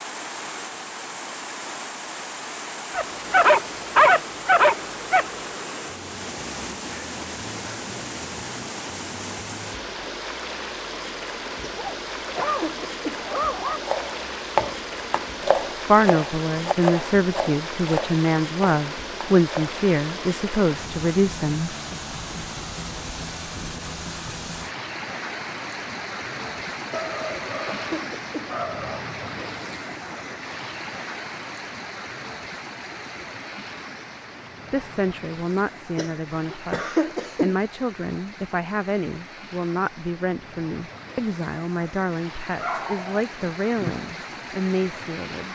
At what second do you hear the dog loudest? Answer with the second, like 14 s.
4 s.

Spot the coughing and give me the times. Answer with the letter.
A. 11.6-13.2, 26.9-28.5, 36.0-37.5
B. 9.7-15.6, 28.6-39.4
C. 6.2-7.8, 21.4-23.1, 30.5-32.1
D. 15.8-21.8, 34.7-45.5
A.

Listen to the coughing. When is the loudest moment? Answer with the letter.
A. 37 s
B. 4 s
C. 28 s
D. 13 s
A.